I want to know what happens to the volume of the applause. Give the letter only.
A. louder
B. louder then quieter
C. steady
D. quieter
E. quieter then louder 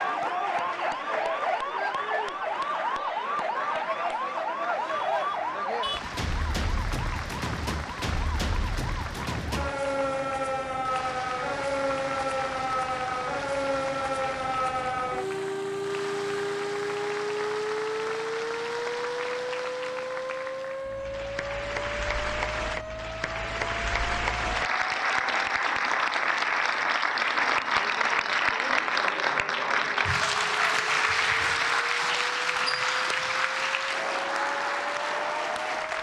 A.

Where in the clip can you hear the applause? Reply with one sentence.
The applause can be heard from 0.0 to 35.9 s.